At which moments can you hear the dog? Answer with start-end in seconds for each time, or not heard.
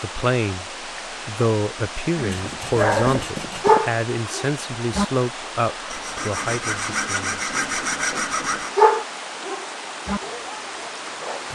2.1-5.0, 8.8-11.5.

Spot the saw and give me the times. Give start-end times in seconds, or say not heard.
2.3-3.9, 5.9-8.8.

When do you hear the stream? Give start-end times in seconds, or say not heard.
0.0-11.5.